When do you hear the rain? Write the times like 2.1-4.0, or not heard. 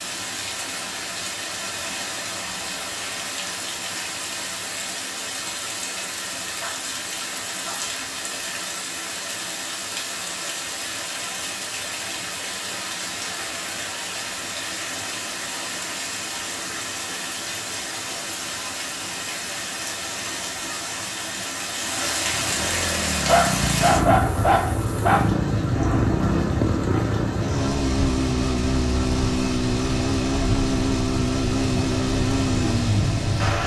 0.0-33.6.